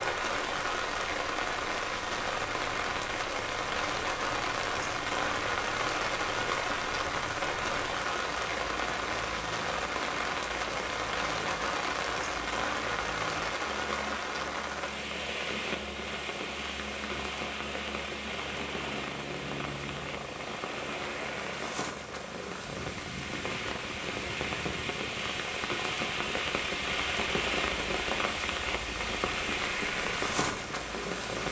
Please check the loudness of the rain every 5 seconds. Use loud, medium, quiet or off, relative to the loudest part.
loud, loud, loud, medium, medium, loud, loud.